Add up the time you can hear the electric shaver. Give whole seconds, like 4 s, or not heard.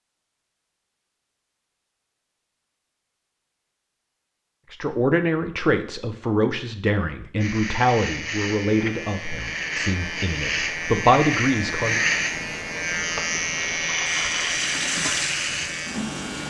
9 s.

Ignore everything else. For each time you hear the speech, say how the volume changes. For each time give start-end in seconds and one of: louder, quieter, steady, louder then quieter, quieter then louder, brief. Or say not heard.
4.7-12.1 quieter then louder.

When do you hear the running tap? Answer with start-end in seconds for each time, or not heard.
14.2-16.4.